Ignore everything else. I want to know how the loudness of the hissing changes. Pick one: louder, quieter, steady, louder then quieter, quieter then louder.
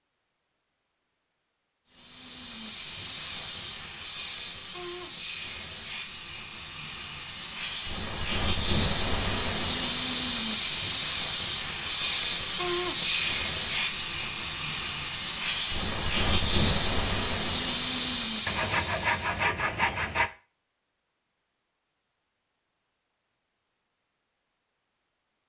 louder.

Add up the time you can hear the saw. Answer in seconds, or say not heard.
2 s.